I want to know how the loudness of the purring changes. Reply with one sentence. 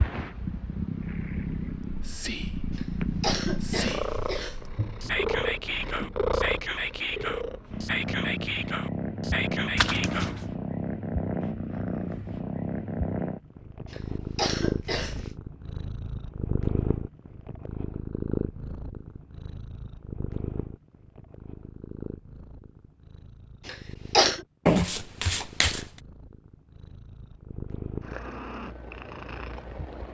The loudness of the purring goes down.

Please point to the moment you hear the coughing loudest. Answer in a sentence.
The loudest moment of the coughing is at 24 seconds.